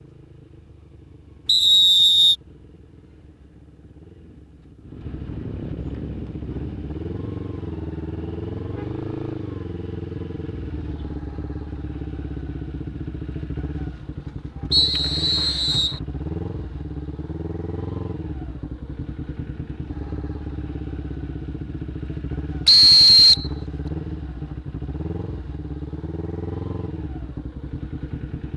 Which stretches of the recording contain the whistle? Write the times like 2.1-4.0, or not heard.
1.4-2.4, 14.7-16.0, 22.6-23.4.